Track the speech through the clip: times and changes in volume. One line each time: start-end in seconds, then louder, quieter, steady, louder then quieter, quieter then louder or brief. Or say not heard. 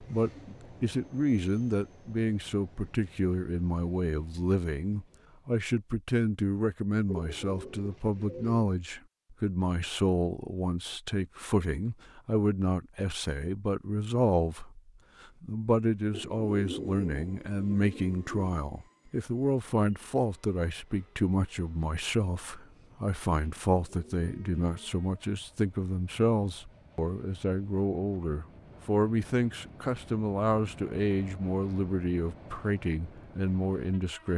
0.0-34.3 steady.